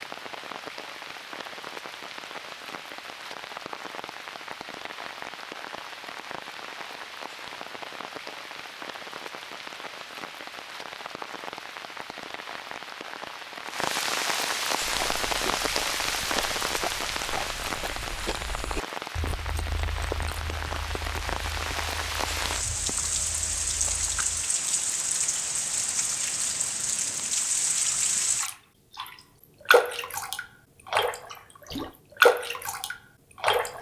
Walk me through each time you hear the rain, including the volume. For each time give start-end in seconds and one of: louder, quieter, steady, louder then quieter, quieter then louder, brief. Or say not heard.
0.0-33.7 louder.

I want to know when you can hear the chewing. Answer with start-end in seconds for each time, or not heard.
14.7-24.3.